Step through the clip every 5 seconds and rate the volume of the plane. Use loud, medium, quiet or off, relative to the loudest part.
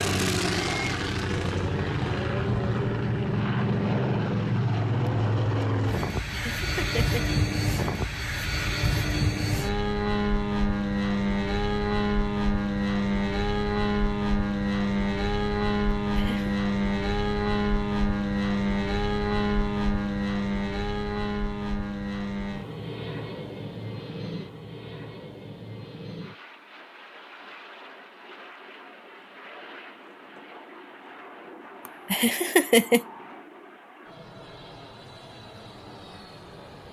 loud, loud, loud, loud, medium, quiet, quiet, quiet.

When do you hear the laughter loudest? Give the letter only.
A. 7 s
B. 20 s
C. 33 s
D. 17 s
C.